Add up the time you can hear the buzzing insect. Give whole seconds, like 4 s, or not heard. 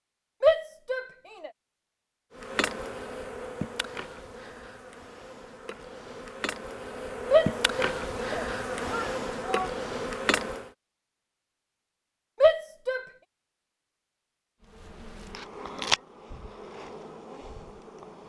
12 s.